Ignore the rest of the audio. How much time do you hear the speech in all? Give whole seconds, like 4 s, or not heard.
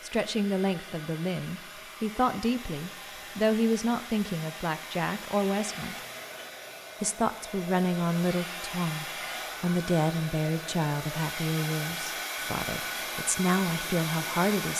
14 s.